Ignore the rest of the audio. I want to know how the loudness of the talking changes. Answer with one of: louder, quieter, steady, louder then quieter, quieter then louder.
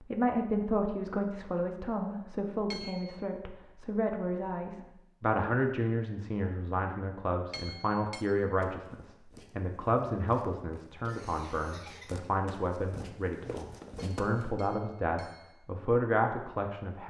steady.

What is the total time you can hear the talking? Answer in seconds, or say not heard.
17 s.